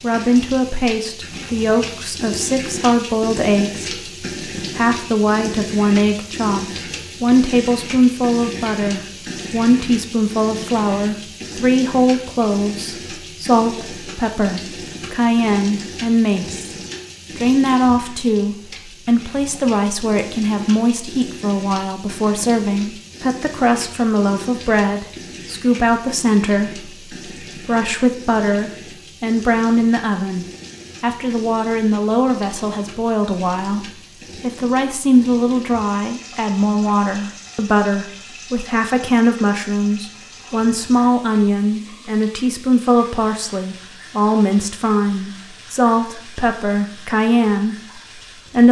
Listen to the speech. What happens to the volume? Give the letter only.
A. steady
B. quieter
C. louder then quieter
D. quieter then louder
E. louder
A.